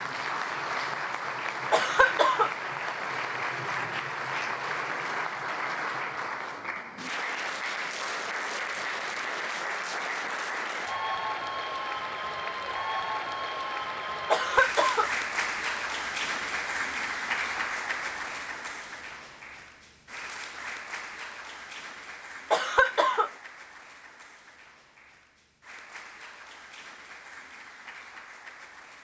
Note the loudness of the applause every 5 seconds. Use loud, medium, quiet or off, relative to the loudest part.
loud, loud, loud, loud, medium, quiet.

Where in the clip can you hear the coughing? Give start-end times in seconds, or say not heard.
1.7-2.5, 14.3-15.1, 22.5-23.3.